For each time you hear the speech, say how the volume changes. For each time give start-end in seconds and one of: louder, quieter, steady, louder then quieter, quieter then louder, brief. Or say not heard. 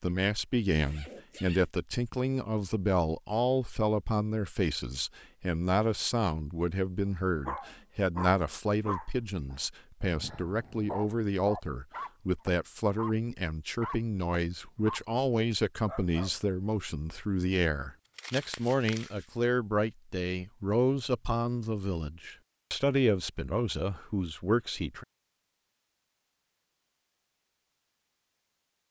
0.0-25.1 steady.